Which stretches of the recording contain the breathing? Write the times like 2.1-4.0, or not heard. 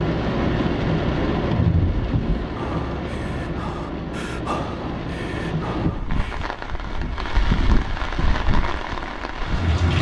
2.4-6.5.